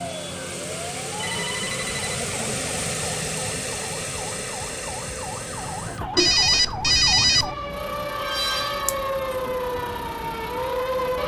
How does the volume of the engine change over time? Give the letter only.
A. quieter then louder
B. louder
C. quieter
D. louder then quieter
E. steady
C.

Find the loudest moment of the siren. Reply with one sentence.
The volume of the siren peaks at 9 seconds.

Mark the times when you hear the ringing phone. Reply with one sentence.
You can hear the ringing phone from 1.1 to 2.2 s and from 6.2 to 7.5 s.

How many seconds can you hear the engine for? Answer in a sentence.
You can hear the engine for 11 seconds altogether.